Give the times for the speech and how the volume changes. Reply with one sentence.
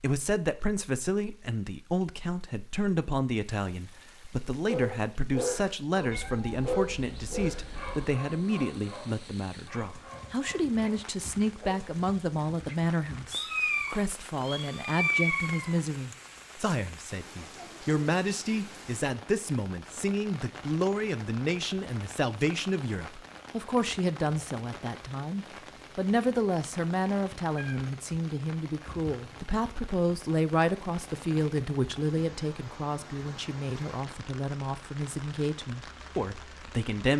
You can hear the speech from 0.0 to 37.1 s, at a steady volume.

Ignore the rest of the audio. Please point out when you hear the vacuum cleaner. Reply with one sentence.
You can't hear the vacuum cleaner here.